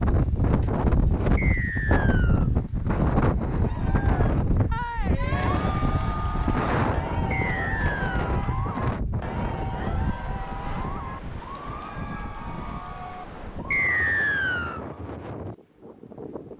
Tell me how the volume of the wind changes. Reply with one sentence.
The volume of the wind goes down.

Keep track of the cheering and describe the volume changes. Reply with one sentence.
The loudness of the cheering goes down.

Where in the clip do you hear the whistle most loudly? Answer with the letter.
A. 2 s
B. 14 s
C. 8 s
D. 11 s
B.